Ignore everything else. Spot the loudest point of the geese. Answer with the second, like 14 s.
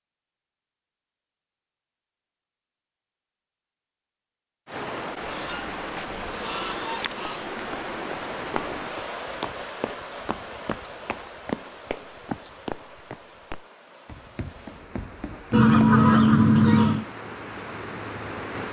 16 s.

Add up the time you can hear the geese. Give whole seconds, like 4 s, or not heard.
4 s.